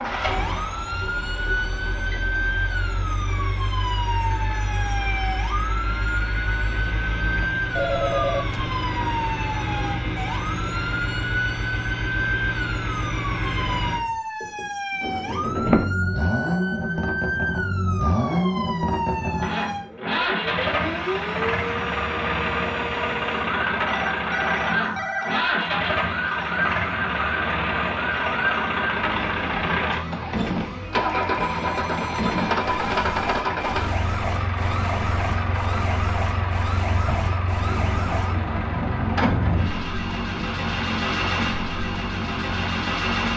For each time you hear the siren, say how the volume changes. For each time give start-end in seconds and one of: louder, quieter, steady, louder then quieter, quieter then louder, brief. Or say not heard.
0.3-43.3 steady.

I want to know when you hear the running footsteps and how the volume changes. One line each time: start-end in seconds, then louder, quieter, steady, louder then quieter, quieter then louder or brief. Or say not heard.
not heard.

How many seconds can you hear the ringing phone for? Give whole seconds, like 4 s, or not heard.
4 s.